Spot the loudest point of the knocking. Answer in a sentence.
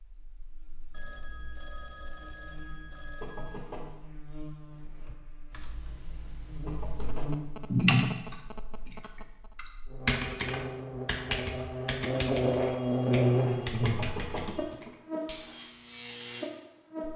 The volume of the knocking peaks at 14 seconds.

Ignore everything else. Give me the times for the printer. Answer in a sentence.
You can't hear the printer here.